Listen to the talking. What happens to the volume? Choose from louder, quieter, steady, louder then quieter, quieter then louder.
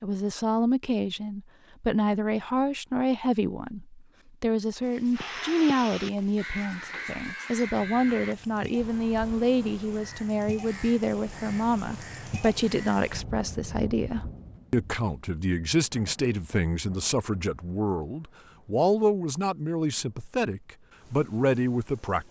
steady.